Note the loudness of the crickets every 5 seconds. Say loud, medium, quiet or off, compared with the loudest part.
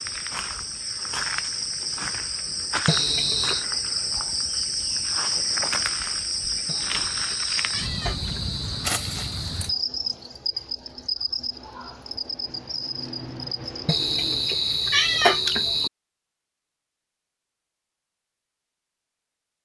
loud, loud, medium, off.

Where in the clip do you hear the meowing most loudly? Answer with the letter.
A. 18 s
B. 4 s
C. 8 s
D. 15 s
D.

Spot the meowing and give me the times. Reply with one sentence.
The meowing can be heard from 2.9 to 3.6 s, from 6.7 to 8.6 s and from 13.8 to 15.9 s.